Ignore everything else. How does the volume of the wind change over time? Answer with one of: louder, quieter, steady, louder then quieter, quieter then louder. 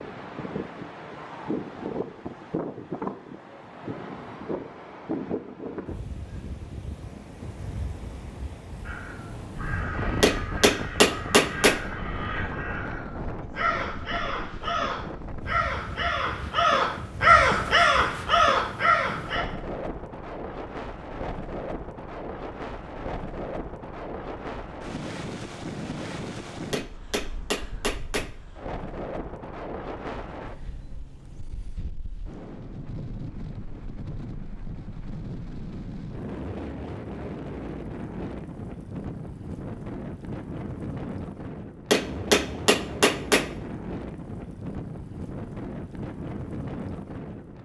steady.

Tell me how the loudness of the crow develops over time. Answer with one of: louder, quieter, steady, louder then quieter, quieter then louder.
louder.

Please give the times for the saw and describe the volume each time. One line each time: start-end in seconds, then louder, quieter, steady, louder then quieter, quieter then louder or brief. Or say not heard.
not heard.